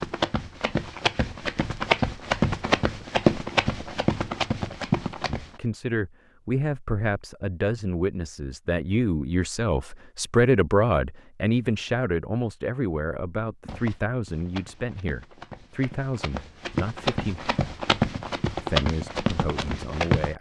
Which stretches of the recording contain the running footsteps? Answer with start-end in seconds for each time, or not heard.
0.0-5.5, 13.7-20.3.